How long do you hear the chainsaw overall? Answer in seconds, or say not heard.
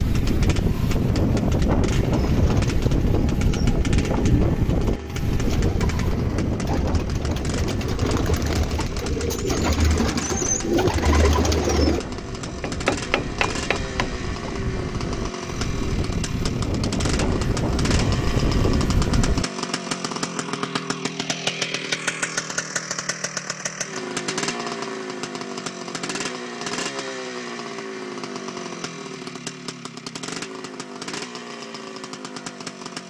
33 s.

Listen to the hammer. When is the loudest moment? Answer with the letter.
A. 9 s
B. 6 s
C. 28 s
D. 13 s
D.